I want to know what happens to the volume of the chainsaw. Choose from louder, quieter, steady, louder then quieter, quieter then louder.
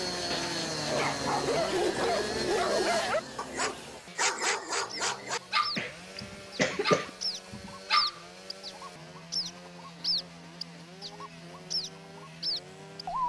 quieter.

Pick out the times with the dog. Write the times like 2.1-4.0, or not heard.
0.8-8.2.